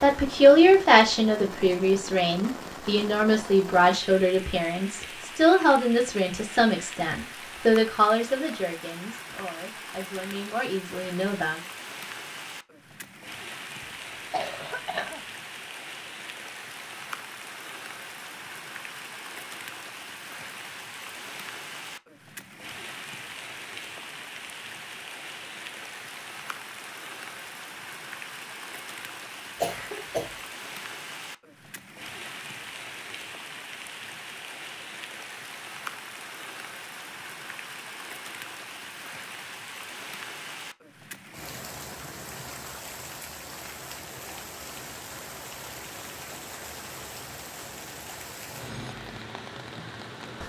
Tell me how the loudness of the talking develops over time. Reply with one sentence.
The loudness of the talking goes down.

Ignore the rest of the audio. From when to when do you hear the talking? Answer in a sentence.
The talking can be heard from 0.0 to 11.6 s.